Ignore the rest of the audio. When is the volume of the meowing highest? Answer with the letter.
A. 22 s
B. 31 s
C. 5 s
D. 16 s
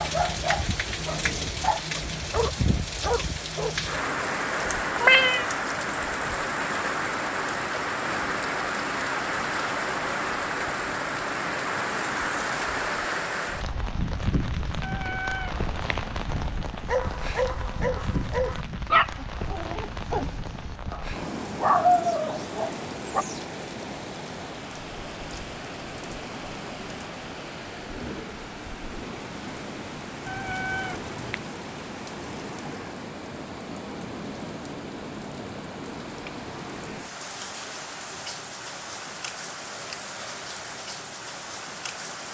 C.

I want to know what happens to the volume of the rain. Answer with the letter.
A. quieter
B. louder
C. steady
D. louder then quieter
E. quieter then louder
A.